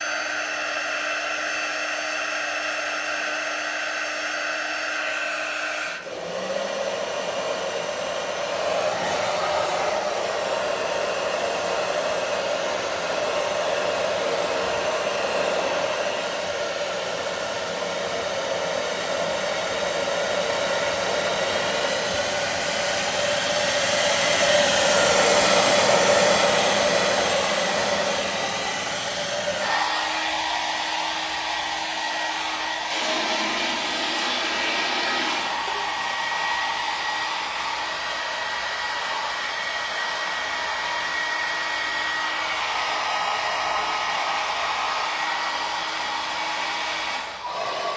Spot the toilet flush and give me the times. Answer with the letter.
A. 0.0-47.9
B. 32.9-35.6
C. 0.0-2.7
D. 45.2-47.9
B.